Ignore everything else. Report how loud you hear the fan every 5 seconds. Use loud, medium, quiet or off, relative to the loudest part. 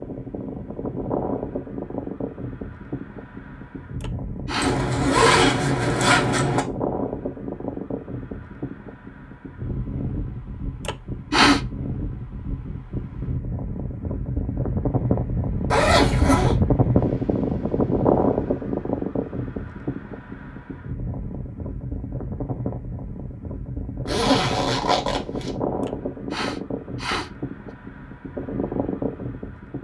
medium, medium, medium, loud, medium, medium.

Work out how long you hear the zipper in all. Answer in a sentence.
The zipper can be heard for 4 seconds in total.